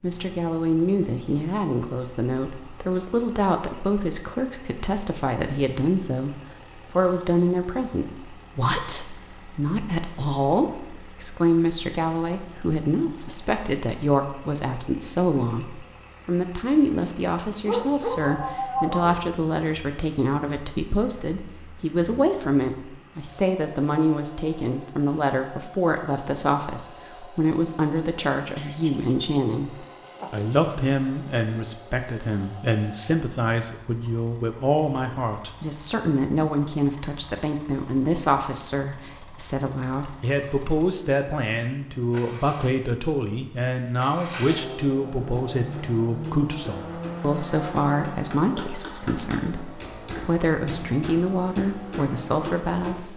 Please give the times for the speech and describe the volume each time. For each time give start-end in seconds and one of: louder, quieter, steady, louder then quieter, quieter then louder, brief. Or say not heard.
0.0-53.1 steady.